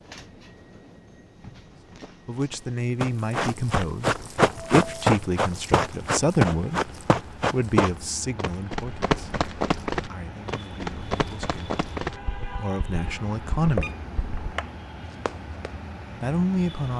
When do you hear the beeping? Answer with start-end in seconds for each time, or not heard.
13.6-14.8.